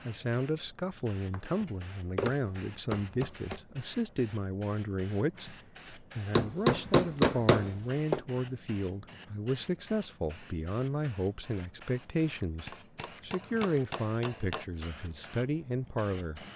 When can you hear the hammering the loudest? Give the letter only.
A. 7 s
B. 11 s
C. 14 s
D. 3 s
A.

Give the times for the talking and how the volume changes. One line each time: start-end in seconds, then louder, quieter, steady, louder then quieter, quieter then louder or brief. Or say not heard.
0.1-16.4 steady.